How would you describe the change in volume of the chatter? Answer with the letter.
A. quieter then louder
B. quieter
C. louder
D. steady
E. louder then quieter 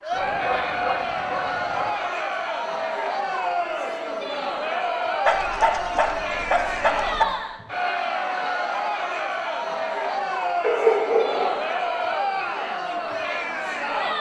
D.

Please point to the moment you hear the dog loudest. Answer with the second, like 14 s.
11 s.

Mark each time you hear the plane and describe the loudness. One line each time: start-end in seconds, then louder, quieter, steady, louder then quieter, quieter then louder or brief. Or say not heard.
not heard.